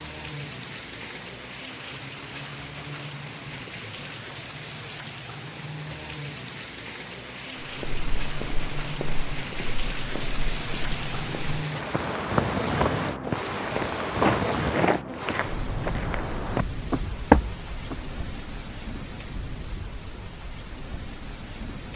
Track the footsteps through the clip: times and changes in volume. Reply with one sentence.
The footsteps can be heard from 7.6 to 18.0 s, getting louder.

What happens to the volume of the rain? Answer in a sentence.
The volume of the rain goes up, then down.